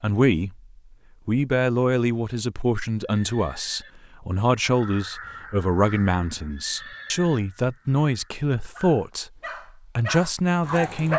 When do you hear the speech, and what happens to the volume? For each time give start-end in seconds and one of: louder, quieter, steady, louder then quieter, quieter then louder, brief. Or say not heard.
0.0-0.6 brief
1.2-9.3 steady
9.9-11.1 brief.